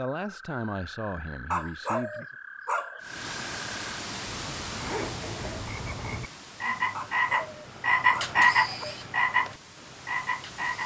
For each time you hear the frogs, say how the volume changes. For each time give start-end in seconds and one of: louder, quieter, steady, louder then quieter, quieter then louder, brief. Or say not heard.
0.1-10.8 louder.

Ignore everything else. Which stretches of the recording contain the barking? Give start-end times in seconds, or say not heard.
1.5-3.0, 6.9-8.9.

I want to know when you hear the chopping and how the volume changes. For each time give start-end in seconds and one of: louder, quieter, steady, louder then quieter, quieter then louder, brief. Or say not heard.
not heard.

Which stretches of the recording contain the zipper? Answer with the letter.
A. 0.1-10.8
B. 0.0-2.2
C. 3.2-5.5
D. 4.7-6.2
D.